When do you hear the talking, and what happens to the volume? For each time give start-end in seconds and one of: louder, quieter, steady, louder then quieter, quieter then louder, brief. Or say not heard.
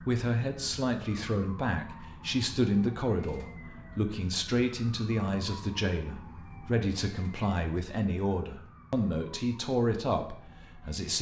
0.0-11.1 steady.